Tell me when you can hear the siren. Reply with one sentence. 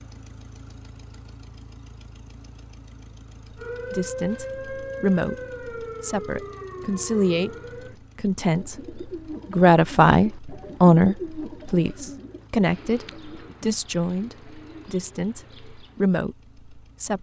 The siren can be heard from 3.5 to 8.0 s.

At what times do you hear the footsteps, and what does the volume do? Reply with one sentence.
The footsteps can't be heard in this clip.